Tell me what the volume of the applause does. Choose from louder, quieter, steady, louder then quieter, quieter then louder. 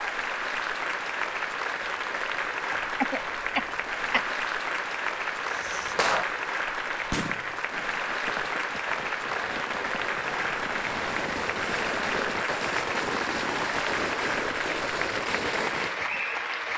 steady.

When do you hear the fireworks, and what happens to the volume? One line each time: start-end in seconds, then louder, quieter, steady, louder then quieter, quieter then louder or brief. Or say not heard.
5.5-6.2 brief
7.1-16.2 louder.